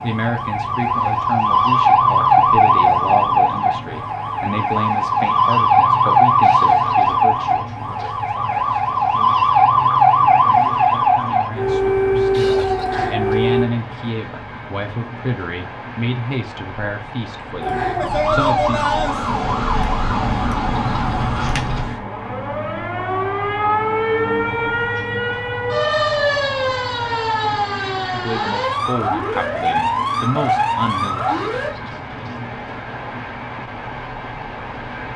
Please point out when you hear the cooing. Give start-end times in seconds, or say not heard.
not heard.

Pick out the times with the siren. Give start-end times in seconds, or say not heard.
0.0-13.7, 17.6-31.8.